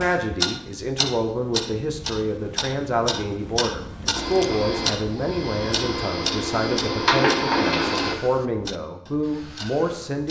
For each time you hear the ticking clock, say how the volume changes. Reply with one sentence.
You can hear the ticking clock from 0.0 to 10.2 s, getting quieter.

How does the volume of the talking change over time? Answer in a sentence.
The volume of the talking stays about the same.